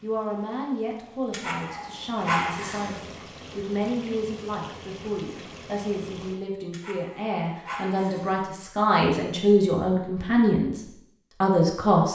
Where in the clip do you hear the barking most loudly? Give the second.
2 s.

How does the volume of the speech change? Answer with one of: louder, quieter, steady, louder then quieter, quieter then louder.
louder.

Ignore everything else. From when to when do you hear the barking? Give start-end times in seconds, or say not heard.
1.3-3.0, 6.7-8.4.